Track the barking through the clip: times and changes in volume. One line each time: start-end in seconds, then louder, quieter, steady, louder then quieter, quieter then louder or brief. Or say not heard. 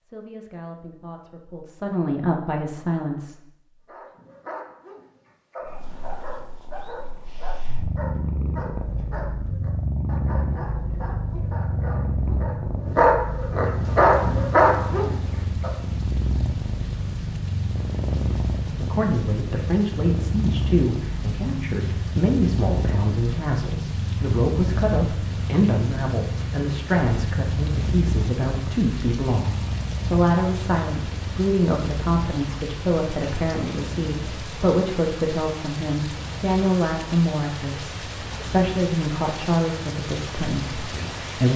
3.9-15.7 louder.